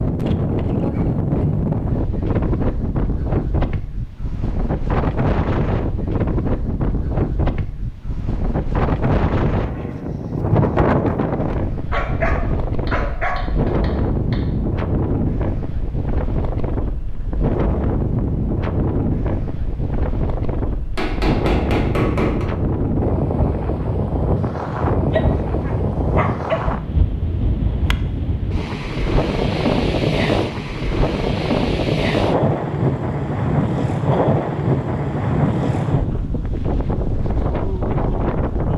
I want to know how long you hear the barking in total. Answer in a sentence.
You can hear the barking for 3 seconds altogether.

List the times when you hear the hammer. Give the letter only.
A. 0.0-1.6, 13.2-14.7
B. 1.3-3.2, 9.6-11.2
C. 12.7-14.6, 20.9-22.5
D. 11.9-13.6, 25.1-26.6
C.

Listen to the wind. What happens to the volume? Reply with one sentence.
The volume of the wind stays about the same.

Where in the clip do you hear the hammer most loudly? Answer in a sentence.
The volume of the hammer peaks at 22 seconds.